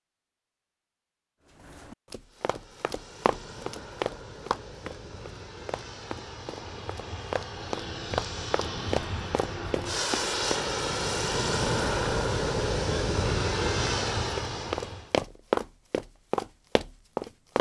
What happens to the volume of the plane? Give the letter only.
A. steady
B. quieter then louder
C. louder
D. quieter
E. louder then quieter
C.